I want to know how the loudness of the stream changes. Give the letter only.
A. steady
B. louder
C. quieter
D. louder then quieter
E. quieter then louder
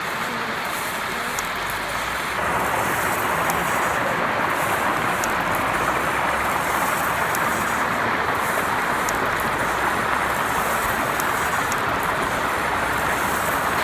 A.